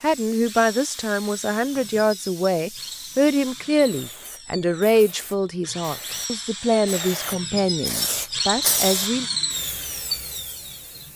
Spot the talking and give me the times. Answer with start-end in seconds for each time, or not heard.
0.0-9.2.